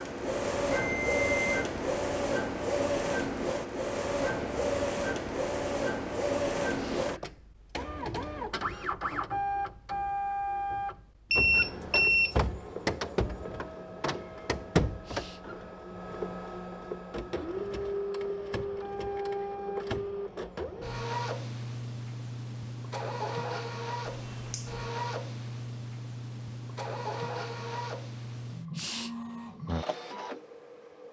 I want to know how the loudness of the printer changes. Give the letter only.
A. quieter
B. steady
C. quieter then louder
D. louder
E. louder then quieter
A.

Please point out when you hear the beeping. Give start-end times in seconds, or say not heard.
0.7-1.4, 11.3-12.4, 24.1-24.6.